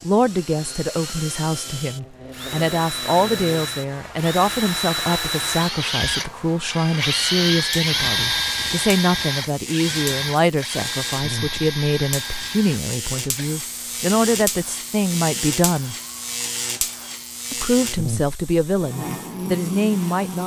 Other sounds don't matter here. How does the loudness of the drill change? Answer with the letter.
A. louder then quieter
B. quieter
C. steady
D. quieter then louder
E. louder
A.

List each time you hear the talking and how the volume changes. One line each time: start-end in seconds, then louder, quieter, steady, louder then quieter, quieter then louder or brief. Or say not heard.
0.0-15.9 steady
17.5-20.4 brief.